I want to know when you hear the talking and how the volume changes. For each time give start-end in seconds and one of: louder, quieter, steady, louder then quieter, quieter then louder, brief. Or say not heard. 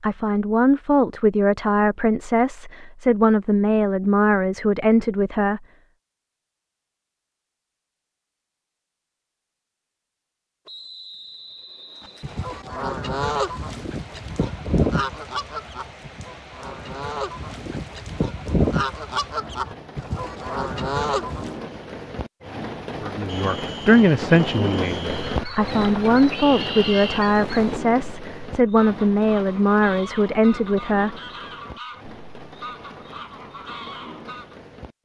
0.0-5.6 steady
23.0-31.1 steady.